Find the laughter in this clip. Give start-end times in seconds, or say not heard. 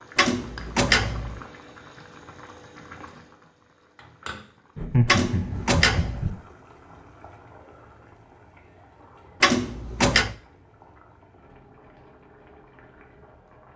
4.8-6.3.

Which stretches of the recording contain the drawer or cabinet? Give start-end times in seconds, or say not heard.
0.1-1.4, 5.0-6.3, 9.4-10.3.